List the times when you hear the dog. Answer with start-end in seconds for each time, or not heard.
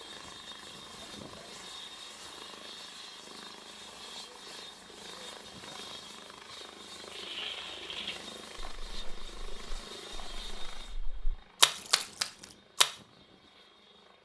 not heard.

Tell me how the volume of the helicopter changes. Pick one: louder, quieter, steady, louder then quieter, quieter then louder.
quieter.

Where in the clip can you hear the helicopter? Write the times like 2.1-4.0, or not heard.
0.0-14.2.